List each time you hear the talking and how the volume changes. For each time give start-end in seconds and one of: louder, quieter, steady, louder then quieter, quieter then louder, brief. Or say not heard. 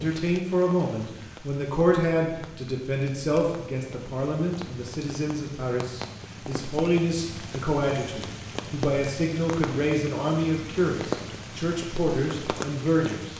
0.0-13.3 steady.